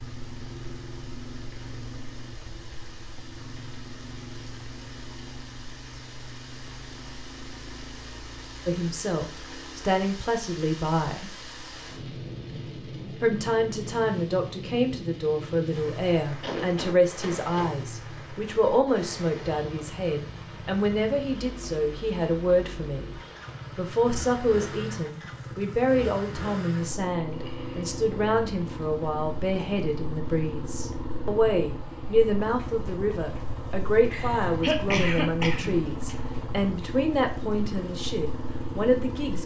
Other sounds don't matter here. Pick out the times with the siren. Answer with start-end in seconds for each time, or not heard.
not heard.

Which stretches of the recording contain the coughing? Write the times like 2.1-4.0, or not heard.
16.4-17.8, 34.1-35.8.